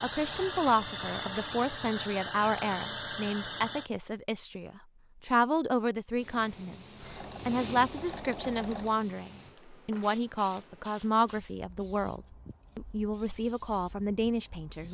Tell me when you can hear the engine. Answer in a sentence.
You can hear the engine from 0.0 to 3.9 s and from 7.0 to 8.9 s.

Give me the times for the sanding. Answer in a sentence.
The sanding can't be heard in this clip.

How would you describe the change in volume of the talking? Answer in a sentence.
The volume of the talking stays about the same.